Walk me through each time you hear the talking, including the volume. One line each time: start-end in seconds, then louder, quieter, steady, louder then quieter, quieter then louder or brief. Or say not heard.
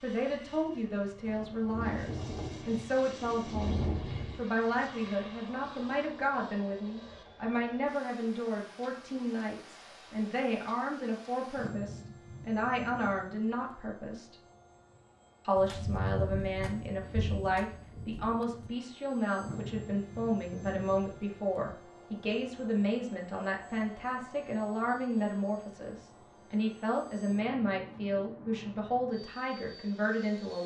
0.0-14.3 steady
15.4-30.6 steady.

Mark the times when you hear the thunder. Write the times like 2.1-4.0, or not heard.
1.2-4.4, 15.6-18.7.